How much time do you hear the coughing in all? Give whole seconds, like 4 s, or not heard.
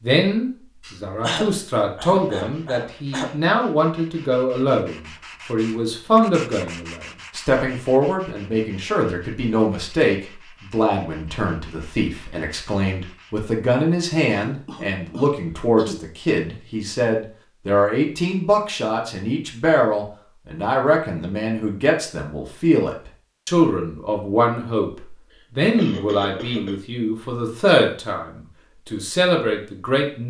6 s.